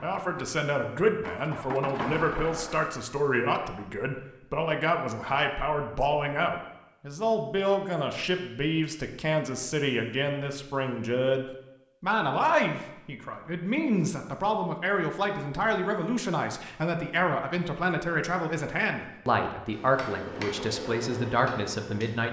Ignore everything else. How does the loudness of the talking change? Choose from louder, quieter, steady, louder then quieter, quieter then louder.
steady.